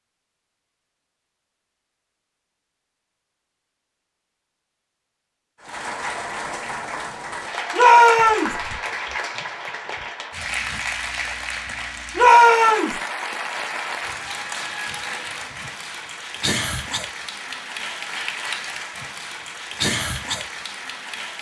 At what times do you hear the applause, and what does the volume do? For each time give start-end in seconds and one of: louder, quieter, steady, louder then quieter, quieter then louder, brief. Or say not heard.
5.6-21.3 steady.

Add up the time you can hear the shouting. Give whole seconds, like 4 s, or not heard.
2 s.